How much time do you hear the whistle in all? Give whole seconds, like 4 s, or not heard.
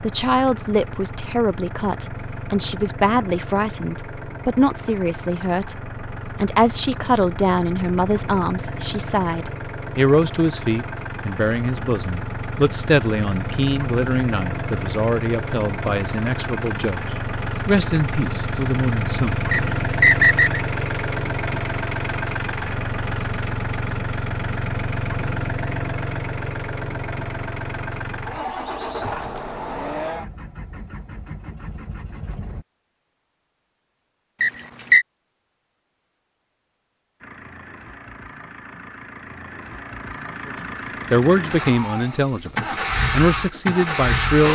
2 s.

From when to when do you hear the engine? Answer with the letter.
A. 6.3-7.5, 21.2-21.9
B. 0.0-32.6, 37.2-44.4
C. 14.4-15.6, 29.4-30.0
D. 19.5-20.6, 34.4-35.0
B.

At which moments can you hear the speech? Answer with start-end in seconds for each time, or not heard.
0.0-17.1, 17.6-19.4, 41.1-44.4.